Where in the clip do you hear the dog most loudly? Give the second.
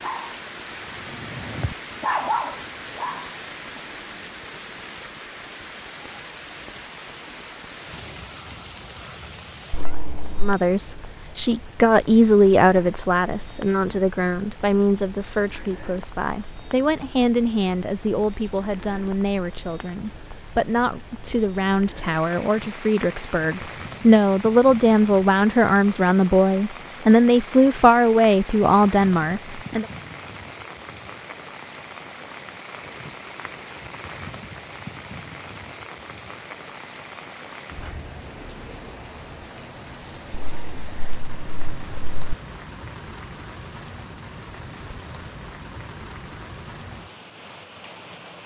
2 s.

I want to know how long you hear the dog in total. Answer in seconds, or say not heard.
4 s.